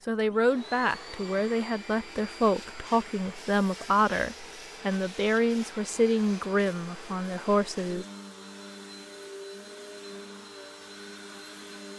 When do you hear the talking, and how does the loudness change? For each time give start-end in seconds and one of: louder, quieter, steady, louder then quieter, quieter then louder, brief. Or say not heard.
0.1-8.1 steady.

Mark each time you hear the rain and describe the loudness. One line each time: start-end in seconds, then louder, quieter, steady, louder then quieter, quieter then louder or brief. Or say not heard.
not heard.